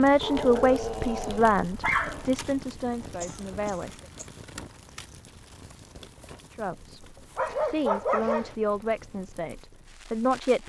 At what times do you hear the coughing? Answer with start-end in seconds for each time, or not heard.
3.2-4.3.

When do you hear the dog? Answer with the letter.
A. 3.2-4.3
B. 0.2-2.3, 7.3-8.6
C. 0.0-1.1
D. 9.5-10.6
B.